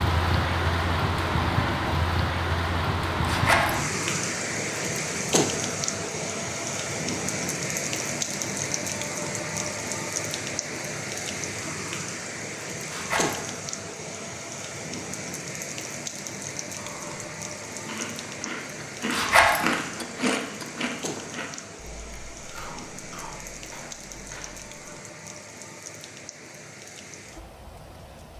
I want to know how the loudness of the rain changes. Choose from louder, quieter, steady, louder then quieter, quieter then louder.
quieter.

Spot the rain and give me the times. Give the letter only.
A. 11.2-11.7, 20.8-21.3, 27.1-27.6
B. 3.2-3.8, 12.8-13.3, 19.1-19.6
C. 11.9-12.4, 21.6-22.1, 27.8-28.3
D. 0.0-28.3
D.